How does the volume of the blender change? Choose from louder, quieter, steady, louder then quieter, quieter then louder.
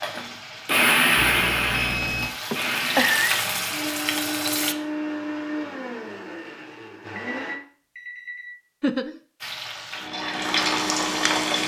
quieter.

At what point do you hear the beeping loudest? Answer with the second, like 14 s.
2 s.